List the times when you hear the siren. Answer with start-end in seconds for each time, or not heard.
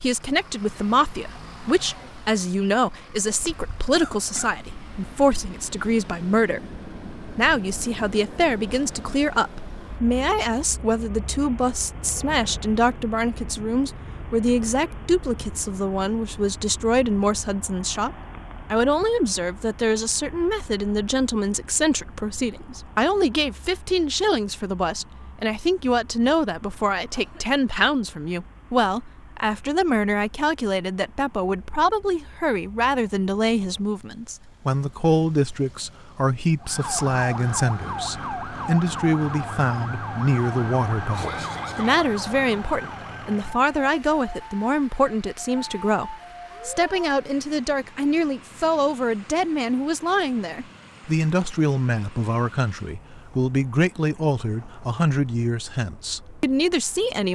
36.6-47.2.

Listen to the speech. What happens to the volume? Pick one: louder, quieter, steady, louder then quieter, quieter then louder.
steady.